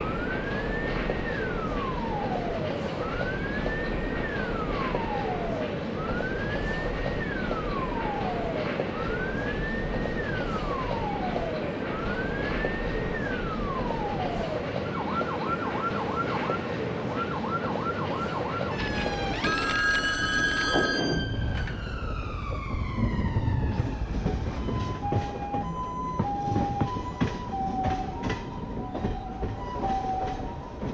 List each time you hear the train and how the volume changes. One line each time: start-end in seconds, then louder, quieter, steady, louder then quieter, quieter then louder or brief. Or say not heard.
0.0-30.8 steady.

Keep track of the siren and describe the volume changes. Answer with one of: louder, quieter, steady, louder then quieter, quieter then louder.
steady.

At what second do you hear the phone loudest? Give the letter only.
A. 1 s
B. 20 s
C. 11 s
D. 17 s
B.